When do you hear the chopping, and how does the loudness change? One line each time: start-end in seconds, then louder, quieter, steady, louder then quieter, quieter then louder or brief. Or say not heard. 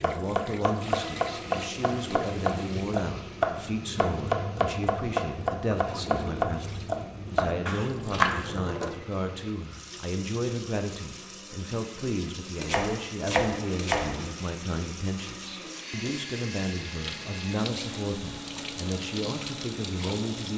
0.0-8.7 steady
12.6-14.2 brief.